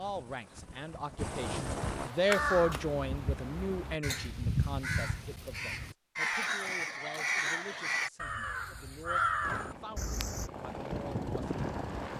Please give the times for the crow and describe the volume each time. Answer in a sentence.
You can hear the crow from 1.9 to 10.5 s, at a steady volume.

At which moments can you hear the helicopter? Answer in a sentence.
The helicopter can be heard from 0.0 to 2.1 s and from 9.4 to 12.1 s.